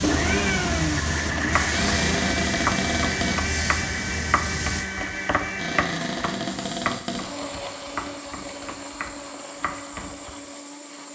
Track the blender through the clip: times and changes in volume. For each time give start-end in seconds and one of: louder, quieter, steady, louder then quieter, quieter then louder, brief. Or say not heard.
0.0-11.0 quieter.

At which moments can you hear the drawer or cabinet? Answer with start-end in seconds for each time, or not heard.
1.7-3.5, 5.5-7.3.